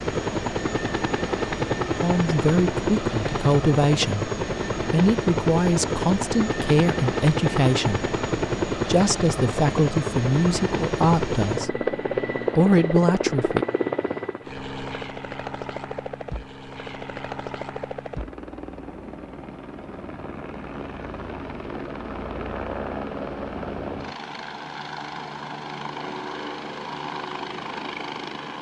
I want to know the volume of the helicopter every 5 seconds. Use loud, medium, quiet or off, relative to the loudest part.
loud, loud, loud, medium, medium, medium.